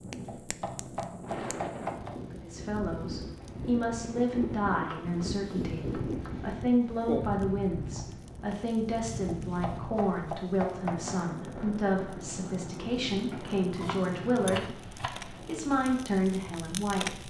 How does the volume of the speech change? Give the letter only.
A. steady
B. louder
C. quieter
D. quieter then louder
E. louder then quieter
A.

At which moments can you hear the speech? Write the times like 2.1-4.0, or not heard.
2.3-17.2.